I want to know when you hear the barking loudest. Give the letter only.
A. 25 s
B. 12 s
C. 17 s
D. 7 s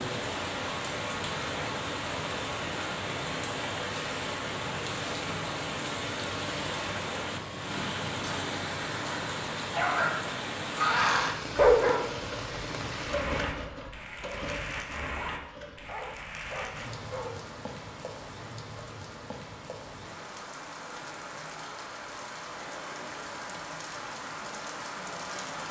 B.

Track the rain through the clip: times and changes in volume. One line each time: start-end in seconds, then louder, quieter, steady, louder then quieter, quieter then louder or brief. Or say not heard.
0.0-25.6 quieter.